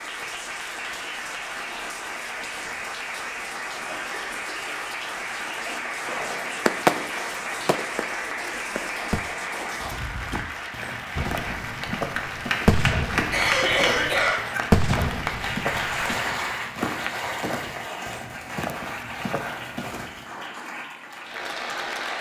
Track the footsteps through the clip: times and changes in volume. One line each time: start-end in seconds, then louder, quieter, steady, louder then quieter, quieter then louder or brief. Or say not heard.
9.7-20.6 steady.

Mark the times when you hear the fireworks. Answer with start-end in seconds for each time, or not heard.
6.0-9.2, 11.2-16.2.